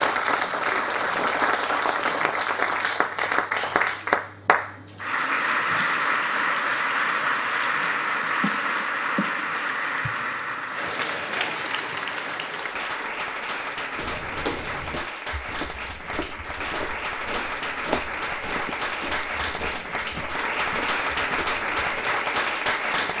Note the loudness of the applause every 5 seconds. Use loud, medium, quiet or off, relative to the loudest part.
loud, loud, medium, medium, loud.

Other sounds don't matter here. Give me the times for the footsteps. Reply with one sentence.
You can hear the footsteps from 13.9 to 22.1 s.